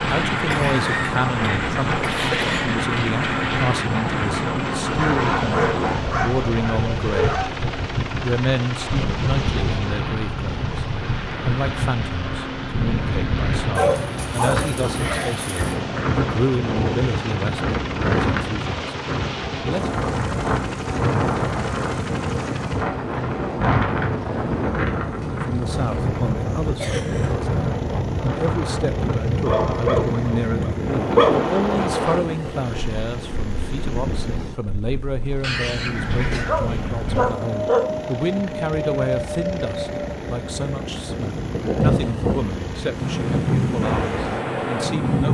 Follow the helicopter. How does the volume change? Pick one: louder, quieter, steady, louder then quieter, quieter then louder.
steady.